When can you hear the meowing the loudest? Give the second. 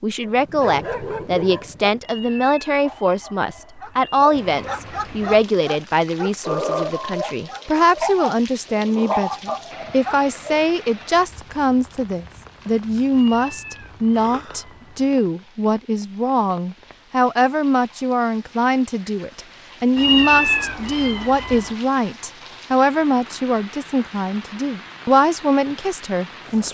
20 s.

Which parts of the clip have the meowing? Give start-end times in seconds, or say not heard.
2.0-4.3, 13.2-15.1, 19.9-21.8.